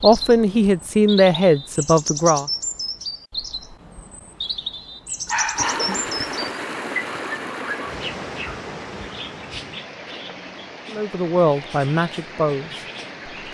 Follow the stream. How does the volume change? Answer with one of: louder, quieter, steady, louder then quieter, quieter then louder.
quieter.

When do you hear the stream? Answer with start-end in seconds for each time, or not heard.
5.5-13.4.